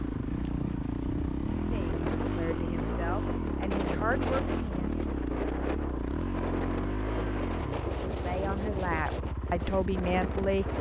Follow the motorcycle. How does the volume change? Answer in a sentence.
The volume of the motorcycle goes down.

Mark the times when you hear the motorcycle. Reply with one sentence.
You can hear the motorcycle from 0.0 to 10.7 s.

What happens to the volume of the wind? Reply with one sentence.
The volume of the wind stays about the same.